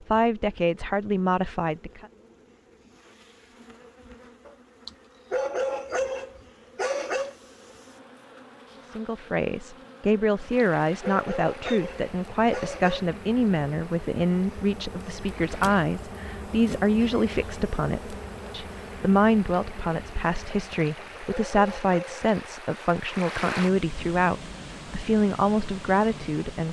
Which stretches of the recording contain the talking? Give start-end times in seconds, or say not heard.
0.1-2.0, 8.9-26.6.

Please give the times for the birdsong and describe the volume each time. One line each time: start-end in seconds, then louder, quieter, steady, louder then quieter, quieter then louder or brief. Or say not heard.
not heard.